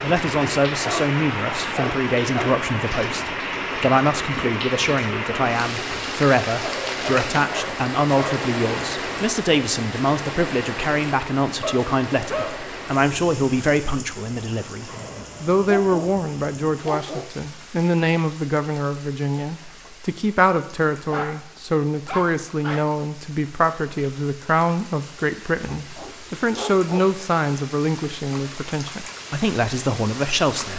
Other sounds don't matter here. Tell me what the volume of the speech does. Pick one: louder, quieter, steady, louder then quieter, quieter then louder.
steady.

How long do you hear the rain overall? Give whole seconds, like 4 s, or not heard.
31 s.